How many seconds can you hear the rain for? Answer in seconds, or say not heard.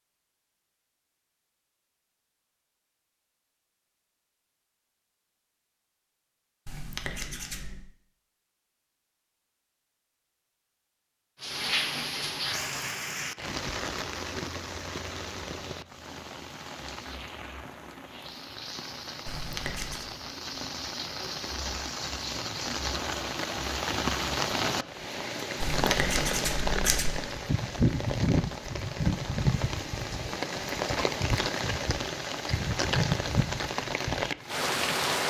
24 s.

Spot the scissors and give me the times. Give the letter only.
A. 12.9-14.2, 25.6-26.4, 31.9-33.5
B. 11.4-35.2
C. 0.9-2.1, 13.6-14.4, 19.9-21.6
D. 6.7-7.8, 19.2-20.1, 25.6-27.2
D.